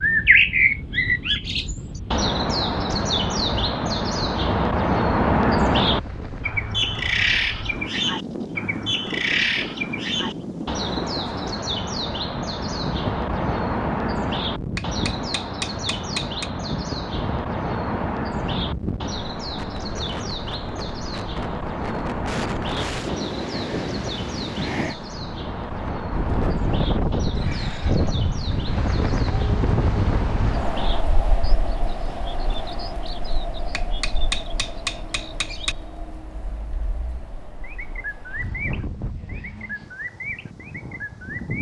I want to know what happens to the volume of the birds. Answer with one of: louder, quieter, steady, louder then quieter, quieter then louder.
quieter.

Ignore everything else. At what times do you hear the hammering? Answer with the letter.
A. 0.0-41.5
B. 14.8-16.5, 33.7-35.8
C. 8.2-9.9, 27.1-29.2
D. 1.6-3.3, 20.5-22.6
B.